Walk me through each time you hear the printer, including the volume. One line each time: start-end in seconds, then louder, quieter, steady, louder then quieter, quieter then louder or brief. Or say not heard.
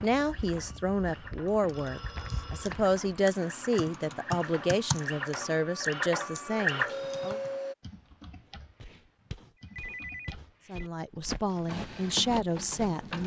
0.2-7.8 louder
11.7-13.2 brief.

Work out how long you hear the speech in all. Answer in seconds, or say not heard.
10 s.